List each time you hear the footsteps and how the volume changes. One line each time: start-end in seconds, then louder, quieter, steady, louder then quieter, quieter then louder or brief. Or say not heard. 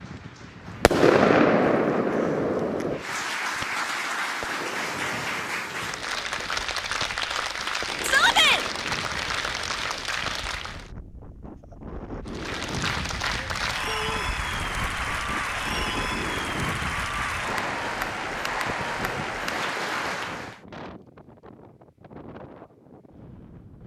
not heard.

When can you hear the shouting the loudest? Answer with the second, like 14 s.
8 s.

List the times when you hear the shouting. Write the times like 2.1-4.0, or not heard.
8.0-8.6, 13.8-14.3.